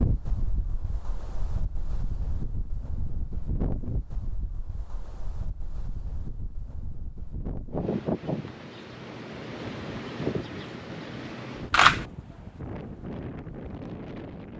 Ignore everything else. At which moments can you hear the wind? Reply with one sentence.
You can hear the wind from 0.0 to 14.5 s.